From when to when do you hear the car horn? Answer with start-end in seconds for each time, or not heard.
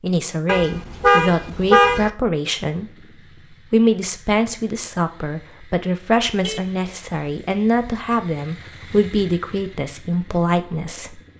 0.5-2.1, 6.2-8.0.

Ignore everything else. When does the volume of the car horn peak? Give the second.
2 s.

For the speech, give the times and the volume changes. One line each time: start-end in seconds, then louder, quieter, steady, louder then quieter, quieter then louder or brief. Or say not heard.
0.0-11.2 steady.